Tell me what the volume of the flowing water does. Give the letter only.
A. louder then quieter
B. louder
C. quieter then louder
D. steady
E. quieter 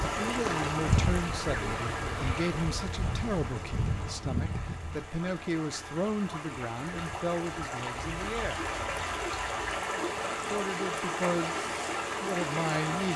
C.